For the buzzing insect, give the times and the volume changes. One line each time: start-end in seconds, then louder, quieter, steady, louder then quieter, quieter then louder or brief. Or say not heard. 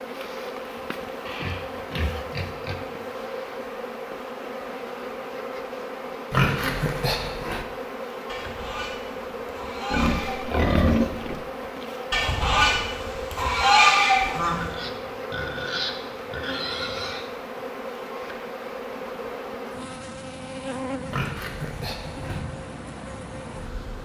0.0-24.0 steady.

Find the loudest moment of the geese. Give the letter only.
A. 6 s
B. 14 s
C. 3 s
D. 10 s
B.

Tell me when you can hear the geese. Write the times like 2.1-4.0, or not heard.
8.2-10.4, 12.1-14.6.